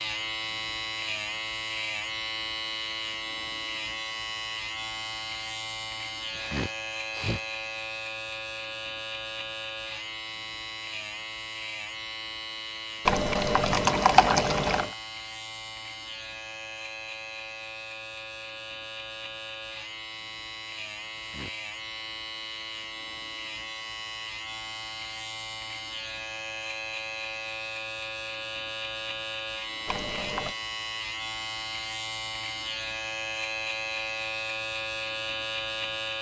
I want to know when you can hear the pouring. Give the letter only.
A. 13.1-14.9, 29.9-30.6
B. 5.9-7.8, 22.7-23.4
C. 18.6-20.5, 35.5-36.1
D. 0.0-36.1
A.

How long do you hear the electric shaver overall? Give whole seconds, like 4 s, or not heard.
36 s.